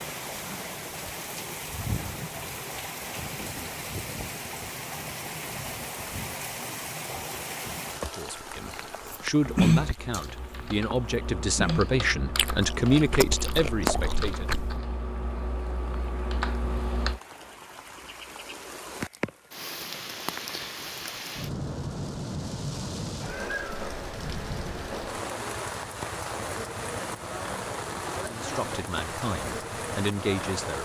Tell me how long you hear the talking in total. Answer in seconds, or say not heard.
9 s.